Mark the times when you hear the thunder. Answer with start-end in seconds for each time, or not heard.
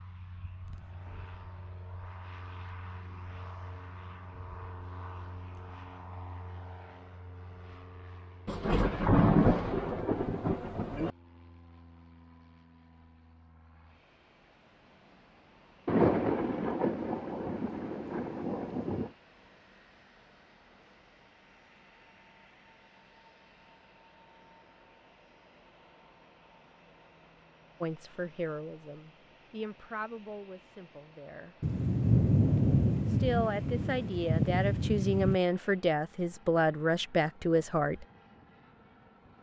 8.4-11.1, 15.8-19.1, 31.6-35.4.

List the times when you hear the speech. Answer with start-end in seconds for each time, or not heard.
27.8-31.6, 33.0-38.0.